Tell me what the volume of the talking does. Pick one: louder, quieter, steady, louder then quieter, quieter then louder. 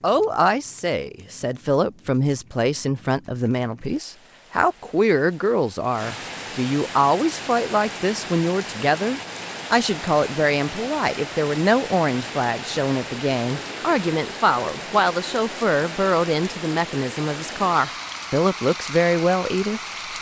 steady.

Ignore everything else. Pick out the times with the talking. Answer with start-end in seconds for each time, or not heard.
0.0-19.8.